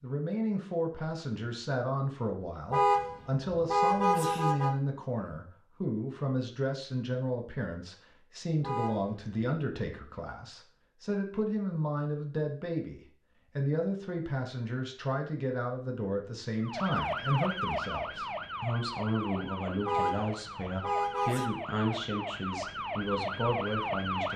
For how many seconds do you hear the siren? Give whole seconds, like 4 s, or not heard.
8 s.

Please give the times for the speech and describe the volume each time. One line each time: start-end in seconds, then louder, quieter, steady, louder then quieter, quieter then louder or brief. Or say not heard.
0.0-24.3 steady.